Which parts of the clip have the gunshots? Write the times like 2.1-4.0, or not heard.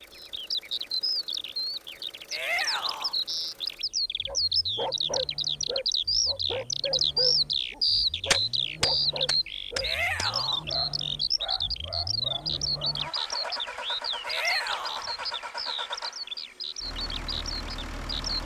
8.3-10.2.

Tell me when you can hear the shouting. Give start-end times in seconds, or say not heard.
2.3-3.1, 9.8-10.7, 14.2-15.1.